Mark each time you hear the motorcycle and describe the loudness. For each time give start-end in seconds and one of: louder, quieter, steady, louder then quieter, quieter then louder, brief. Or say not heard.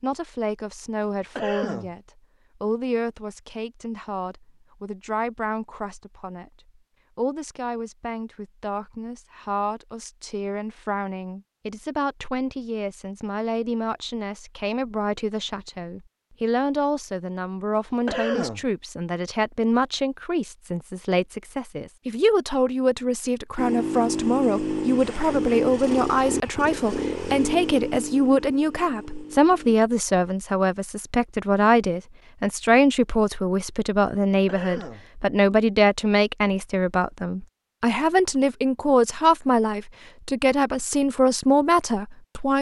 23.6-29.8 quieter.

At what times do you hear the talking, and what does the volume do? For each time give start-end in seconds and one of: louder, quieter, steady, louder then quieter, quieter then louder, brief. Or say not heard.
0.0-2.0 brief
2.6-42.5 louder.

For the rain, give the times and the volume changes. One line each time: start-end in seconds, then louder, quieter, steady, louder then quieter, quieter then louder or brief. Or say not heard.
not heard.